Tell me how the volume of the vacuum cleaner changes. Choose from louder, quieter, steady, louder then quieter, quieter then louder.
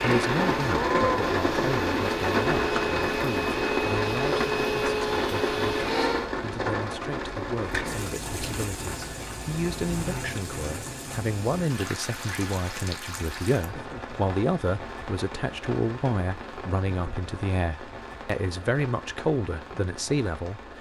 steady.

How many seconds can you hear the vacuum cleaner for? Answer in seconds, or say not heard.
6 s.